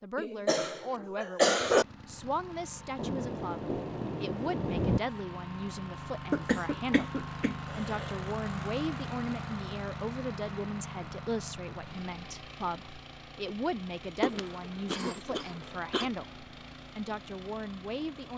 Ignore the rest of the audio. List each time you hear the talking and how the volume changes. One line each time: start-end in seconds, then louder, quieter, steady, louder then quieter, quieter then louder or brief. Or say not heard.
0.0-18.3 steady.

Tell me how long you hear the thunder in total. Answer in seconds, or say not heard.
2 s.